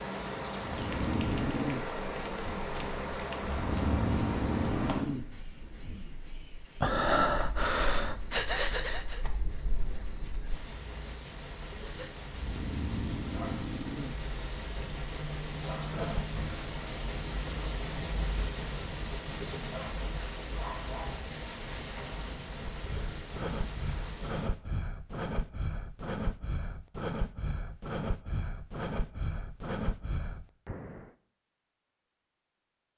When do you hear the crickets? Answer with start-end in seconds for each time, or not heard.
0.0-24.5.